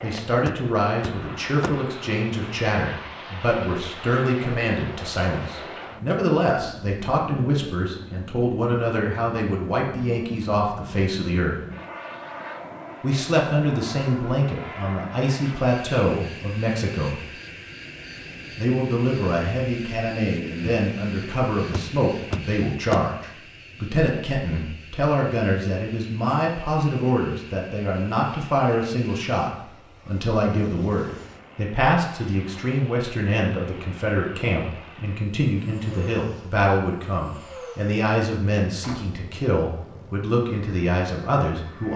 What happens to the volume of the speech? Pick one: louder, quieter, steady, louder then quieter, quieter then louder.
steady.